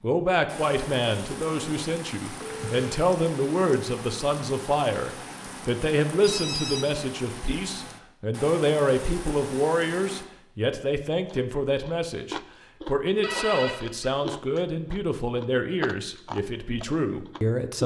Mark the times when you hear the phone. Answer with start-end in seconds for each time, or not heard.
2.4-3.0, 6.2-7.0, 13.2-14.1.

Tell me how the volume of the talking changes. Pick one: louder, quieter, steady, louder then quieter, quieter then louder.
steady.